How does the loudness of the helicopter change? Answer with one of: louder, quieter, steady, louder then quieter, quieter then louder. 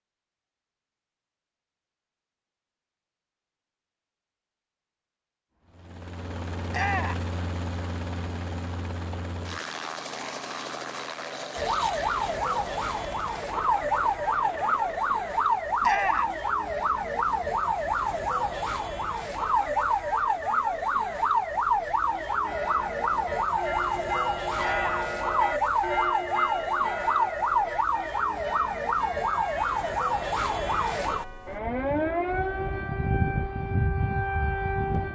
quieter.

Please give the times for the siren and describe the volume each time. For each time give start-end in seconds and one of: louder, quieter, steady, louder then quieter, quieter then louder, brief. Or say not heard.
11.6-35.1 steady.